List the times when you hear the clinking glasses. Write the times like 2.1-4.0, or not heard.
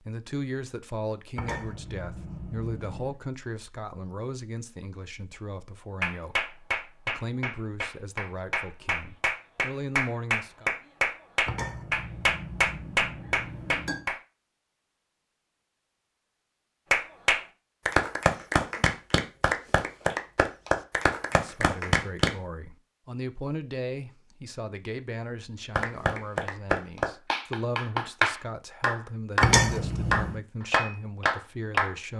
1.4-3.1, 11.4-14.1, 29.4-30.4.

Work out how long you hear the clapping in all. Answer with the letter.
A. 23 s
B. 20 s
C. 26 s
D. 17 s
B.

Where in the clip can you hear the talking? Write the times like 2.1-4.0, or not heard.
0.0-10.7, 21.3-32.1.